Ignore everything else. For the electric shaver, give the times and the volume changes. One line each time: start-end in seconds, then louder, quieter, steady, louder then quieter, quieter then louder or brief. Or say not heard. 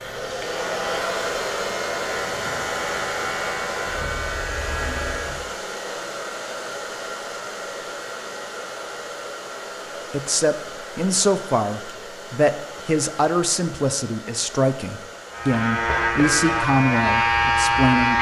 0.1-5.5 steady
15.3-18.1 brief.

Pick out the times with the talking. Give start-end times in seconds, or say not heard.
10.1-18.1.